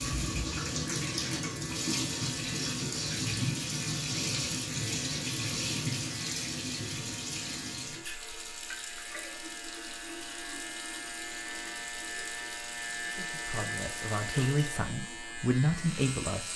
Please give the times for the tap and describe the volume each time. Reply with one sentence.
You can hear the tap from 0.0 to 16.5 s, getting quieter.